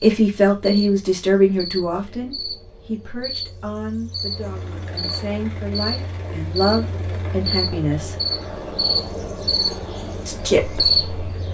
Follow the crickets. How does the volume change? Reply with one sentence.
The volume of the crickets goes up.